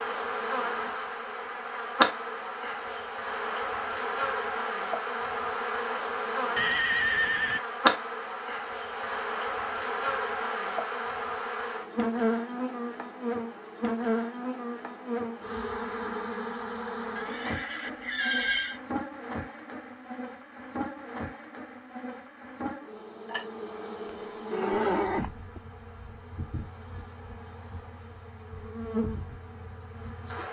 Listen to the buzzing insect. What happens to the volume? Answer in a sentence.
The loudness of the buzzing insect goes down.